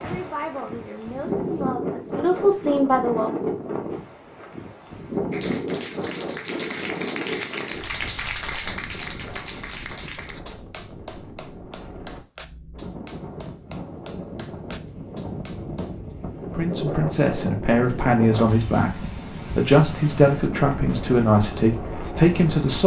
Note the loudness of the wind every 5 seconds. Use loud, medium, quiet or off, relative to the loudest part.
loud, loud, medium, loud, loud.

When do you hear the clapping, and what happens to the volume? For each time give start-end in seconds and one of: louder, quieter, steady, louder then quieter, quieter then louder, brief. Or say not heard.
5.3-16.0 quieter.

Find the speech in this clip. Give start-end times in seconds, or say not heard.
0.0-3.3, 16.5-22.8.